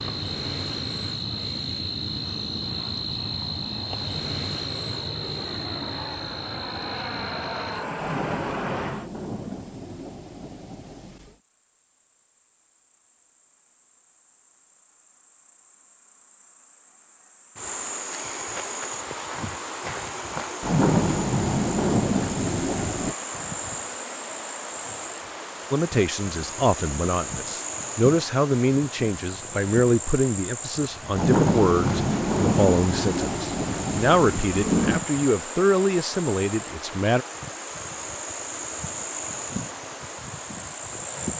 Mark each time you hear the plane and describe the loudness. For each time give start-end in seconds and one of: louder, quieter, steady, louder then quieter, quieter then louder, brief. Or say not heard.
0.0-9.1 louder.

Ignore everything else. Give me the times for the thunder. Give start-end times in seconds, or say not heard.
8.0-11.3, 20.6-23.1, 31.1-35.0.